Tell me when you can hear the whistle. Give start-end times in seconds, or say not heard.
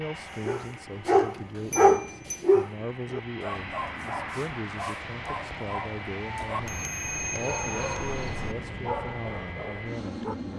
not heard.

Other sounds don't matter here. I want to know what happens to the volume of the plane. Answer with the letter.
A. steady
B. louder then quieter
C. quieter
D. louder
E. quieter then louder
D.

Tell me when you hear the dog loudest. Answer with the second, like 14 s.
2 s.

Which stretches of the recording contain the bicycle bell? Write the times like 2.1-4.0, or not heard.
1.7-2.5, 6.5-8.6.